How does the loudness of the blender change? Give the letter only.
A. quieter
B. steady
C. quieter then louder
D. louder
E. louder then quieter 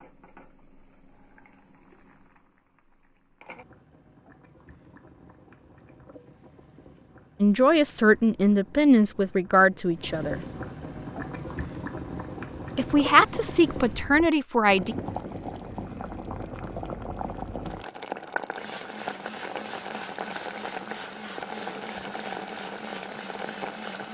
B.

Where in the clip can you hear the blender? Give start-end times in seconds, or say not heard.
18.5-24.0.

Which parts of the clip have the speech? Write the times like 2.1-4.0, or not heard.
7.4-10.4, 12.8-14.9.